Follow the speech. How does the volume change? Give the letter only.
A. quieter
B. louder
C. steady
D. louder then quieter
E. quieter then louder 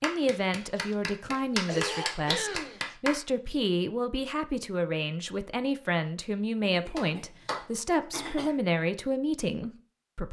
C.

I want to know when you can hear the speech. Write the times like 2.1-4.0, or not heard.
0.0-10.2.